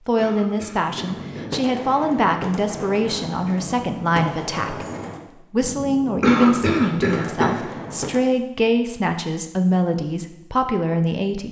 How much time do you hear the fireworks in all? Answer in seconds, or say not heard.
7 s.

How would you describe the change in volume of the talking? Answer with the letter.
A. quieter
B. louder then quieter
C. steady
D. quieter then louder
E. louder
C.